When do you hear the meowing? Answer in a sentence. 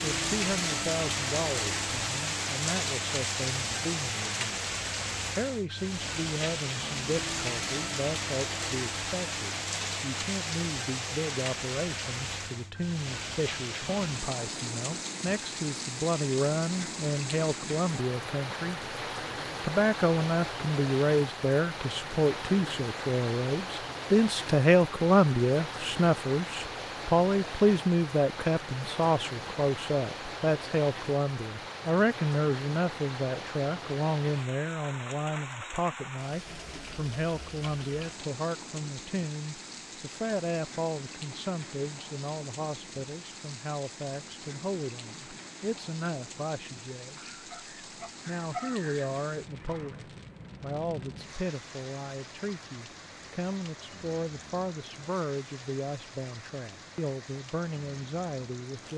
The meowing can't be heard in this clip.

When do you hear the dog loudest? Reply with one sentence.
The volume of the dog peaks at 49 seconds.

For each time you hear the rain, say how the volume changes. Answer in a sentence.
The rain can be heard from 0.0 to 58.9 s, getting quieter.